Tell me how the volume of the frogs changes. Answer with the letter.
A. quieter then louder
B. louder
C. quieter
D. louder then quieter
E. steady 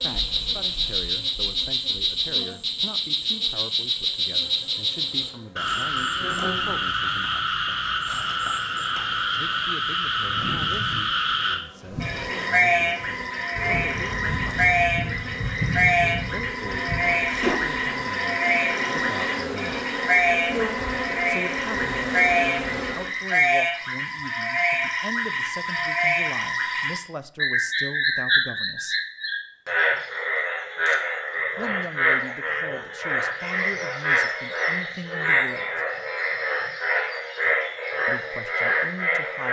E.